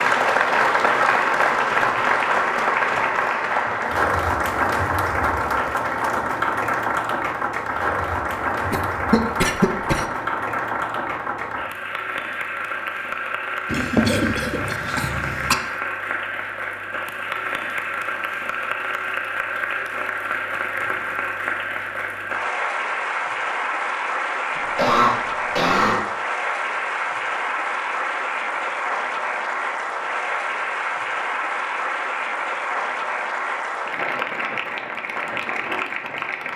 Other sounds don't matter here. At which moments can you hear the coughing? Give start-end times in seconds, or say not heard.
8.7-10.1, 13.7-15.6, 24.6-26.0.